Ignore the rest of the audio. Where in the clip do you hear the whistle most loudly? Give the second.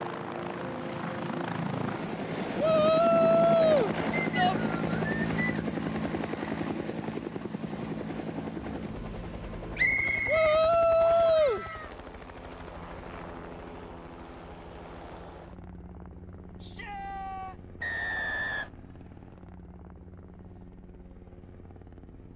10 s.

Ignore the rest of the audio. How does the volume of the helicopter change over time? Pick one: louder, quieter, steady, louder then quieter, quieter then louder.
quieter.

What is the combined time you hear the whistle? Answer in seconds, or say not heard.
4 s.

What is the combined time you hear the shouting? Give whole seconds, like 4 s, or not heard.
4 s.